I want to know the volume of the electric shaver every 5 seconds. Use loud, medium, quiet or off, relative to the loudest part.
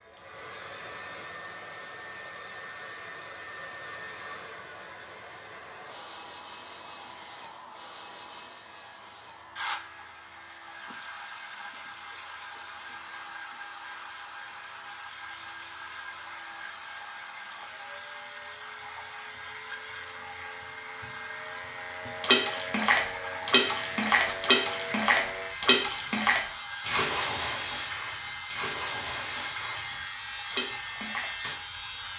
quiet, quiet, quiet, quiet, loud, loud, loud.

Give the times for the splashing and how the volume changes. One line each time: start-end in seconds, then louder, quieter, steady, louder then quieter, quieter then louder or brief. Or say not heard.
22.2-31.6 quieter.